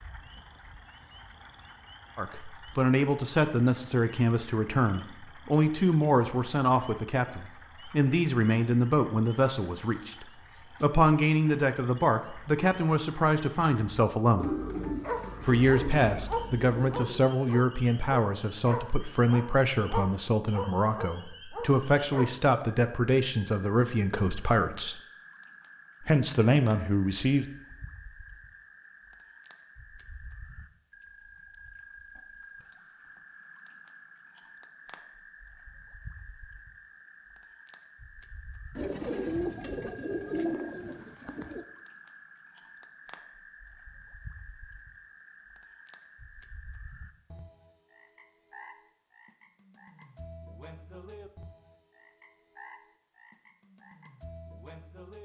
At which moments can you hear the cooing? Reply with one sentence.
The cooing can be heard from 14.3 to 17.3 s and from 38.8 to 41.6 s.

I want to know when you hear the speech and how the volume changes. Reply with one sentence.
You can hear the speech from 2.1 to 14.6 s, at a steady volume; from 15.4 to 25.0 s, at a steady volume; and briefly from 26.0 to 27.4 s.